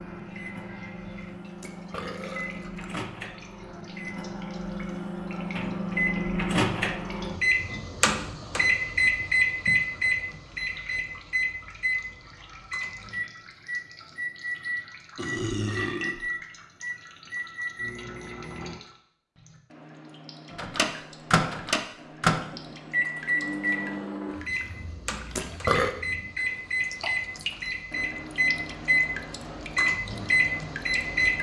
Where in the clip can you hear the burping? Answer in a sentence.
You can hear the burping from 1.6 to 3.0 s, from 15.2 to 16.3 s and from 25.4 to 25.9 s.